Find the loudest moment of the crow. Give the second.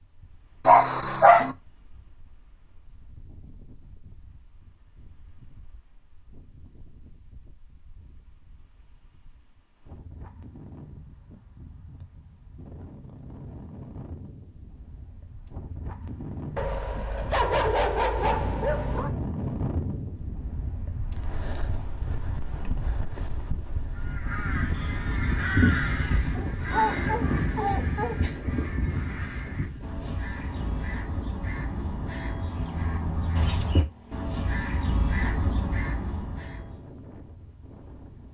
26 s.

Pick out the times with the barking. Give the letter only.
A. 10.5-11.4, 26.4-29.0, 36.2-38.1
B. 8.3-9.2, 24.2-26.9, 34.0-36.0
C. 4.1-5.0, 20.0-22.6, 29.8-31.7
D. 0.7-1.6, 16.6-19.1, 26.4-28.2
D.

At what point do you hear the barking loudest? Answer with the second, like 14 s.
1 s.